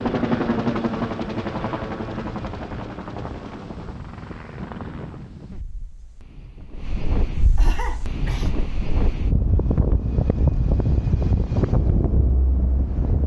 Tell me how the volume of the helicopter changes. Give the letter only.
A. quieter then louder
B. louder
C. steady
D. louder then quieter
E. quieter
E.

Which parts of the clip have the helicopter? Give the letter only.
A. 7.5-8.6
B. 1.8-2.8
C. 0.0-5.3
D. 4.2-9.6
C.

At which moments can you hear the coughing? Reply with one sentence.
The coughing can be heard from 7.5 to 8.6 s.